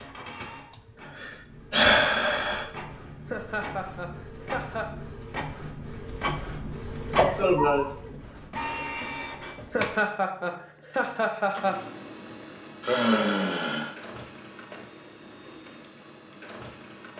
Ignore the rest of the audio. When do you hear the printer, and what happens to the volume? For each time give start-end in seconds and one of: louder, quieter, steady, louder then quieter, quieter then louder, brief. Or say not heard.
0.0-17.1 louder then quieter.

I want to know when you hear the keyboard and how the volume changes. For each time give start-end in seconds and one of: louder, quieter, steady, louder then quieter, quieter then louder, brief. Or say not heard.
not heard.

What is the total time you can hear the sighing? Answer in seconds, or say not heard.
4 s.